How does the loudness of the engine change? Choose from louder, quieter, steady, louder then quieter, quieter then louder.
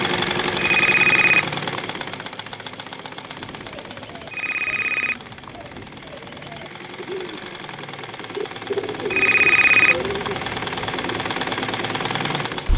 quieter then louder.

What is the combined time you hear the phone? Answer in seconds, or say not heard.
3 s.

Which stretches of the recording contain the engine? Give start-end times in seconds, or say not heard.
0.0-12.7.